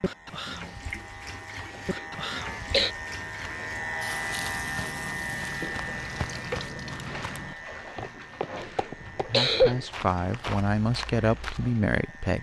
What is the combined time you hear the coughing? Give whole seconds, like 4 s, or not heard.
2 s.